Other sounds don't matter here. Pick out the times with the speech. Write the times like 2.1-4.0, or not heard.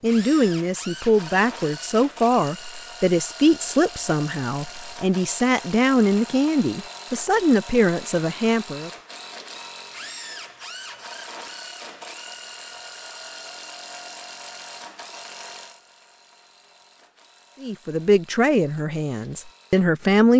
0.0-8.9, 17.6-20.3.